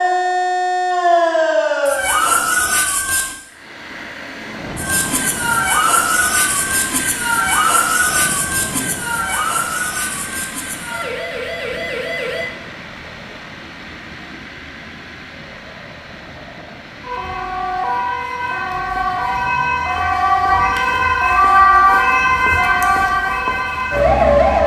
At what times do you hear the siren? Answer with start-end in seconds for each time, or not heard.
0.0-3.4, 4.8-12.5, 17.0-24.6.